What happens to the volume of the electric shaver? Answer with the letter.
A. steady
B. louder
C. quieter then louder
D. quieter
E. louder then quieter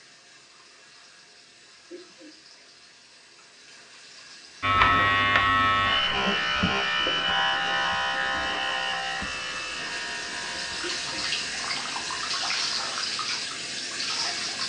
D.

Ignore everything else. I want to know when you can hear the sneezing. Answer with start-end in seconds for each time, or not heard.
1.9-2.4, 10.8-11.2.